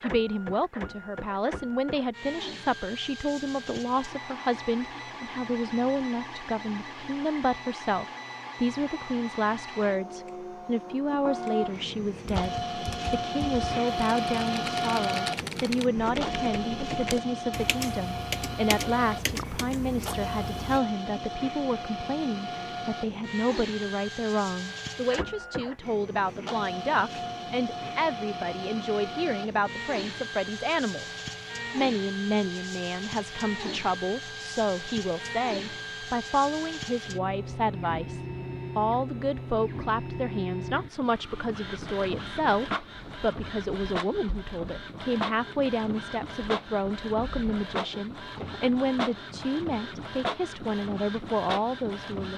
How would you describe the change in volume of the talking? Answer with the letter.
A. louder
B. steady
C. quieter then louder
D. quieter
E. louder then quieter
B.